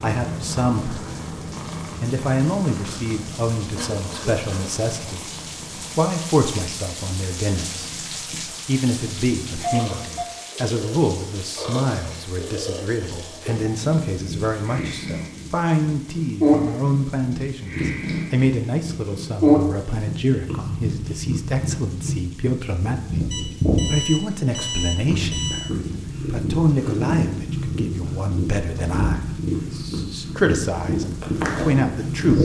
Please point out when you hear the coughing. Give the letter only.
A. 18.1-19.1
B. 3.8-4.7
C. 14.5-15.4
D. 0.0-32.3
B.